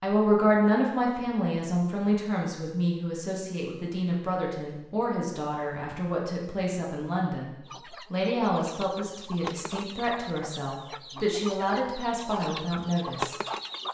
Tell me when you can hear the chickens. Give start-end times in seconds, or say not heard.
7.7-13.8.